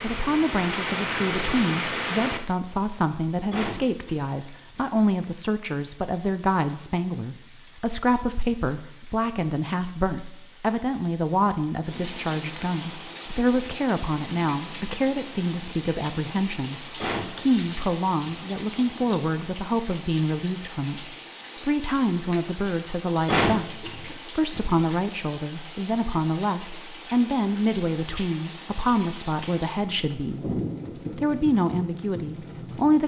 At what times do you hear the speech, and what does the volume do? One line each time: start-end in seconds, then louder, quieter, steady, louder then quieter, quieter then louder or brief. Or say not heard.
0.0-33.0 steady.